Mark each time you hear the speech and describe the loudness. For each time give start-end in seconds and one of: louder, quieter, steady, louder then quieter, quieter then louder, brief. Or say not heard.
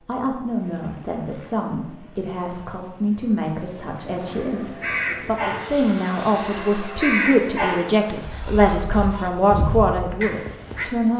0.1-11.1 louder.